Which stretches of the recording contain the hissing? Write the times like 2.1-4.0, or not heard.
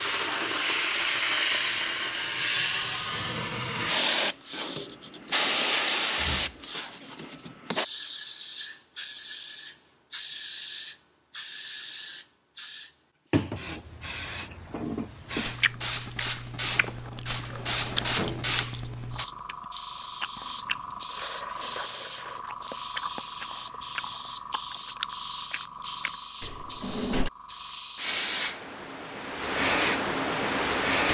0.0-31.0.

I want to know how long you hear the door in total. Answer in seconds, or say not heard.
4 s.